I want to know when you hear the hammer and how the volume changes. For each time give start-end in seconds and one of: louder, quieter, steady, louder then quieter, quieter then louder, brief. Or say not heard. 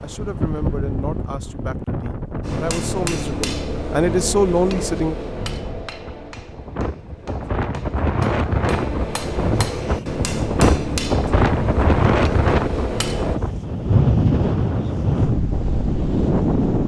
2.5-13.4 quieter then louder.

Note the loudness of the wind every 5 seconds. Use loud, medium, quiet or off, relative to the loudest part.
medium, medium, loud, loud.